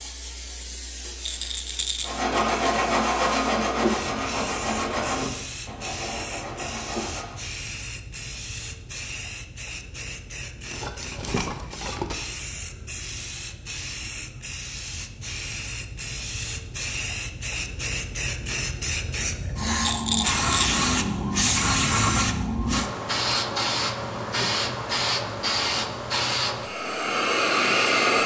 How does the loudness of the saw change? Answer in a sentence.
The volume of the saw goes down.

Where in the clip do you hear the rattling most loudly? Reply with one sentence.
The loudest moment of the rattling is at 20 seconds.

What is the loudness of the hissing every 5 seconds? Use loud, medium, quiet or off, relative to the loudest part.
quiet, quiet, quiet, medium, loud, loud.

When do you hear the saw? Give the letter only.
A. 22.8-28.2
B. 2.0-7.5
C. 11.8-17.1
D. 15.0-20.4
B.